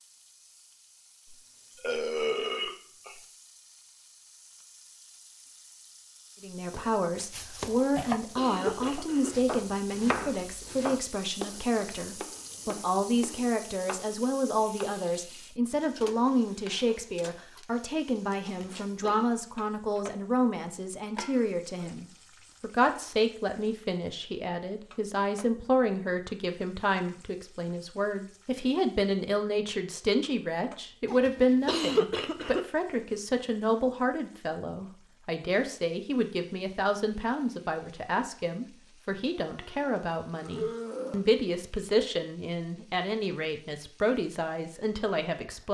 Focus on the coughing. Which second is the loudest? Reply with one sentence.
The loudest moment of the coughing is at 32 seconds.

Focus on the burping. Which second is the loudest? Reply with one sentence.
The loudest moment of the burping is at 2 seconds.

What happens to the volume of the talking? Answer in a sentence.
The volume of the talking stays about the same.